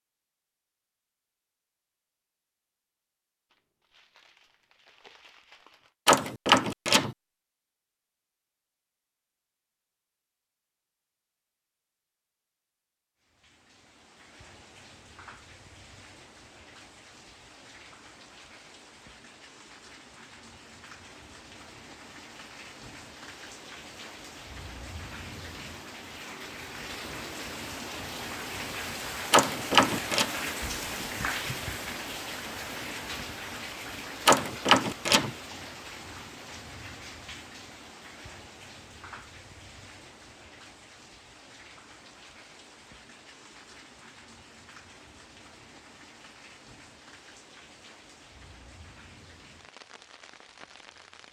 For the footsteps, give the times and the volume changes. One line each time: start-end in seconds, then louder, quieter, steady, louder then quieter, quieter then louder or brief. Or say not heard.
not heard.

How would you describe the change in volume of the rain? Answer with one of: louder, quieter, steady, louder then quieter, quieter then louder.
louder then quieter.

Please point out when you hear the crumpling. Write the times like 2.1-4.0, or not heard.
3.5-5.9, 30.6-31.6.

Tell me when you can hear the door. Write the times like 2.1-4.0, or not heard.
6.0-7.2, 29.3-30.2, 34.2-35.3.